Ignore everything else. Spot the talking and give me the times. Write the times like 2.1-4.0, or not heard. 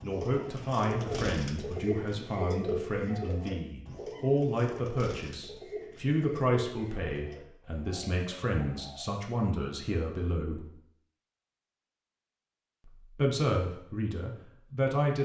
0.0-10.7, 12.8-15.2.